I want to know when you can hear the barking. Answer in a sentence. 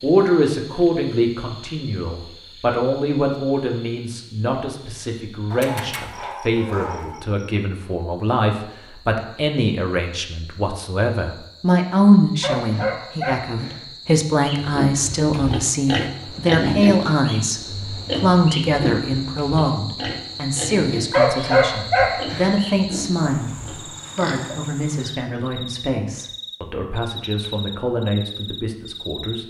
The barking can be heard from 5.5 to 7.2 s, from 12.4 to 13.8 s and from 21.1 to 22.6 s.